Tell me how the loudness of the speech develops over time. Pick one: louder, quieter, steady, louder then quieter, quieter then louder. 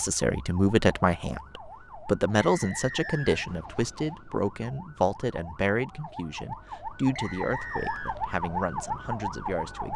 quieter.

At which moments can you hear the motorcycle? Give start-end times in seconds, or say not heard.
not heard.